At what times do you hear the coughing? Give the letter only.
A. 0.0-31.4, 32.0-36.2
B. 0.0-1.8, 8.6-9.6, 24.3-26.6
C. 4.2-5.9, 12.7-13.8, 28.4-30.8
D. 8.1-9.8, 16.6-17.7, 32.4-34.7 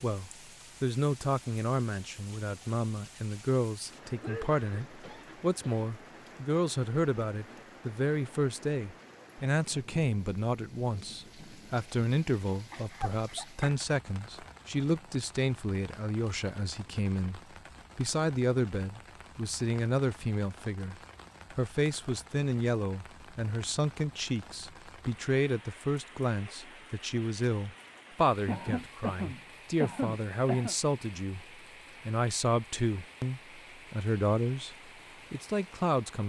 C.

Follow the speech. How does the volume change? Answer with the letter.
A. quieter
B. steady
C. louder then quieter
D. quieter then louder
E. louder
B.